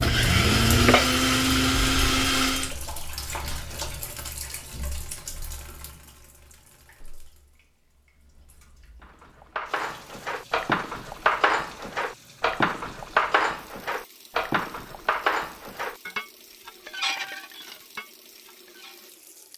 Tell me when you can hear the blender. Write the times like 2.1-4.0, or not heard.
0.0-2.8.